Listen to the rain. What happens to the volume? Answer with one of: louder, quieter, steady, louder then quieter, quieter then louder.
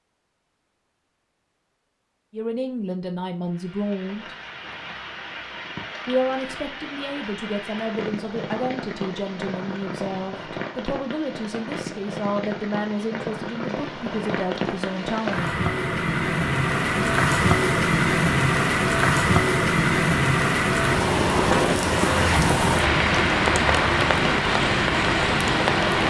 louder.